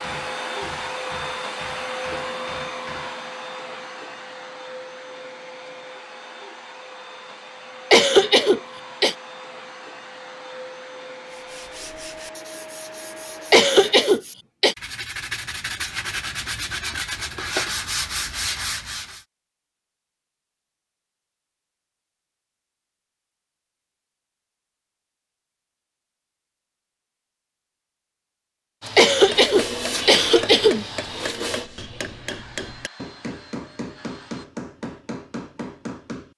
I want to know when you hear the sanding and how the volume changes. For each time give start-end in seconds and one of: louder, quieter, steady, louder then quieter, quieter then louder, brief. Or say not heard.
11.2-19.2 louder.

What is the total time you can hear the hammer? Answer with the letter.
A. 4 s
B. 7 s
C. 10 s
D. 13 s
C.